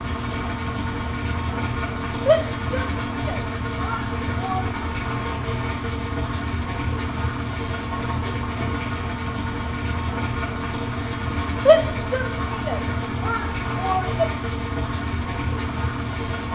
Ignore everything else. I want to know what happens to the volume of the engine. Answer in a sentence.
The volume of the engine stays about the same.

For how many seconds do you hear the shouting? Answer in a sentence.
You can hear the shouting for 5 seconds altogether.